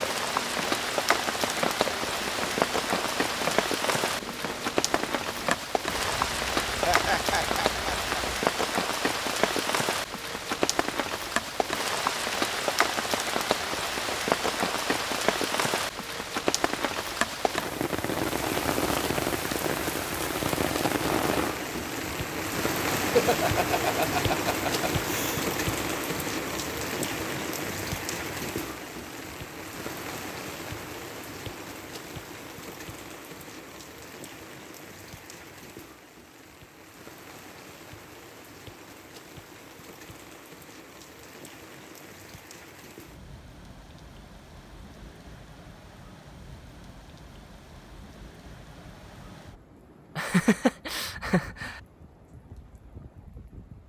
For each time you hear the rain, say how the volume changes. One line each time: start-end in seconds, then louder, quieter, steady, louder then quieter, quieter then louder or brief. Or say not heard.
0.0-53.8 quieter.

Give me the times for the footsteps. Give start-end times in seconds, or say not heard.
0.0-8.4.